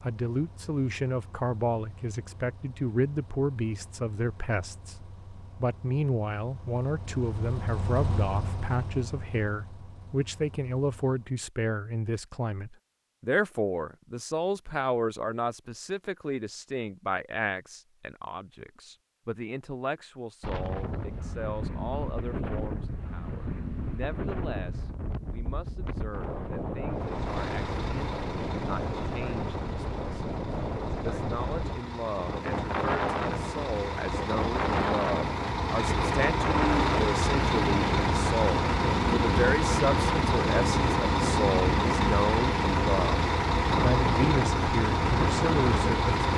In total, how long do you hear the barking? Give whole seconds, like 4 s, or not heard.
not heard.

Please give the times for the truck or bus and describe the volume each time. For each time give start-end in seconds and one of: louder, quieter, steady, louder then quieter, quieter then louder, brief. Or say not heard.
0.0-11.4 louder then quieter
26.9-46.3 louder.